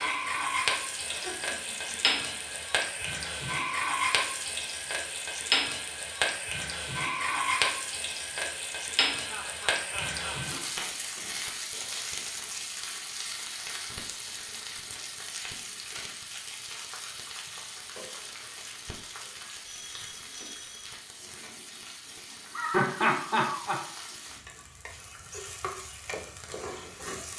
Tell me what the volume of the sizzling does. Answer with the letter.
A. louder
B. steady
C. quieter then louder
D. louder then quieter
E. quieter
E.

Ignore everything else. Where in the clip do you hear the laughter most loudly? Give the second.
23 s.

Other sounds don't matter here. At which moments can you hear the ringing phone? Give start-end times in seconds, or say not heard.
19.6-21.0.